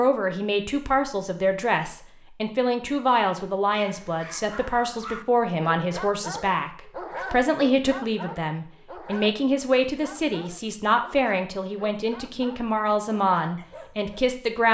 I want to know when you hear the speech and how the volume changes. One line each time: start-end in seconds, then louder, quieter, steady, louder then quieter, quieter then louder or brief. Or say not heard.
0.0-14.6 steady.